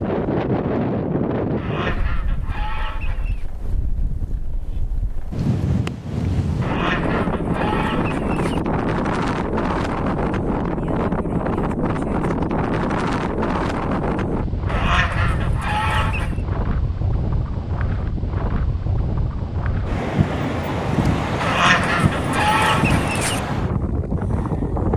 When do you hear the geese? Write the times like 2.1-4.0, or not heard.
1.6-3.5, 6.6-8.6, 14.7-16.4, 21.4-23.4.